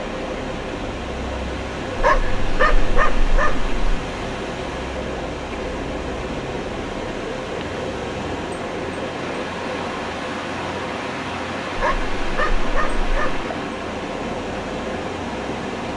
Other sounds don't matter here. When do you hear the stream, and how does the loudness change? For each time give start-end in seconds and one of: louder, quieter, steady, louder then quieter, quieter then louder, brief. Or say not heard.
0.0-15.9 steady.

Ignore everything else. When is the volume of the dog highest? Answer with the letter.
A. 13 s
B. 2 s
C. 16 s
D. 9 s
B.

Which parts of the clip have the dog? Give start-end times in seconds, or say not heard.
1.9-3.7, 11.8-13.4.